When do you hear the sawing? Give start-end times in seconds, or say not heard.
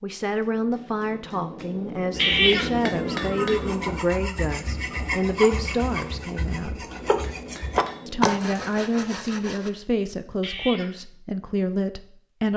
2.1-9.7.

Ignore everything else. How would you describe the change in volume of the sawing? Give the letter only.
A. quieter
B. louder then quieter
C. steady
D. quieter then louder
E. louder
E.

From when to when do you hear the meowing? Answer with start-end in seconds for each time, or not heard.
2.1-3.9, 10.4-10.9.